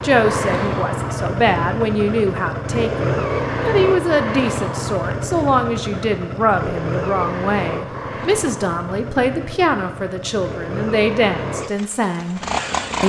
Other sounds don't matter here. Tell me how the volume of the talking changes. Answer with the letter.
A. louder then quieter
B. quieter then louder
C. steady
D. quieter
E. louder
C.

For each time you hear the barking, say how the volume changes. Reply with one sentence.
The barking can't be heard in this clip.